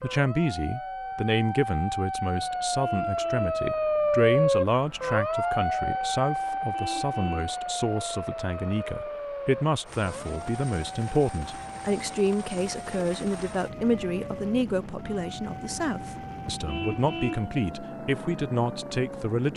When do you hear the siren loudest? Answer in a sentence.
The volume of the siren peaks at 4 seconds.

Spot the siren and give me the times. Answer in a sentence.
The siren can be heard from 0.0 to 19.3 s.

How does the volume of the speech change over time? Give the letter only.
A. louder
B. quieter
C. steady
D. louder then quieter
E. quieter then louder
C.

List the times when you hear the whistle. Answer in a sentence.
The whistle can't be heard in this clip.